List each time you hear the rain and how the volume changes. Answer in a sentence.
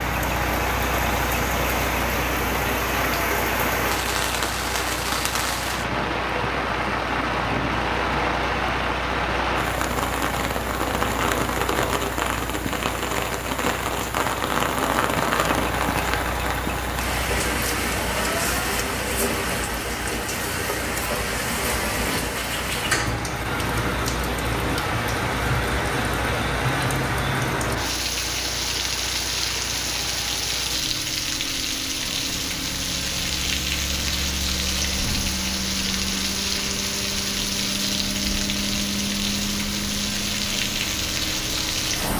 The rain can be heard from 0.0 to 42.1 s, at a steady volume.